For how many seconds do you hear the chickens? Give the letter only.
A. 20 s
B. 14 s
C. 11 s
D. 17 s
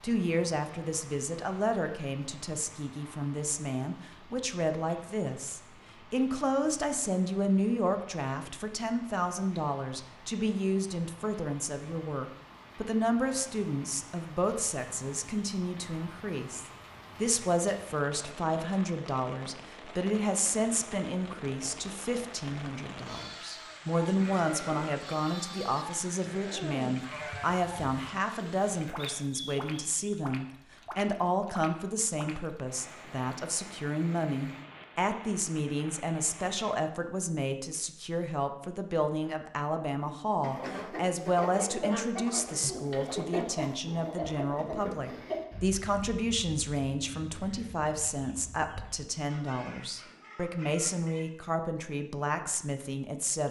C.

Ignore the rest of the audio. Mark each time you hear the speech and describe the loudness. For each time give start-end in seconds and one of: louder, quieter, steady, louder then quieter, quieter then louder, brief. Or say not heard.
0.0-53.4 steady.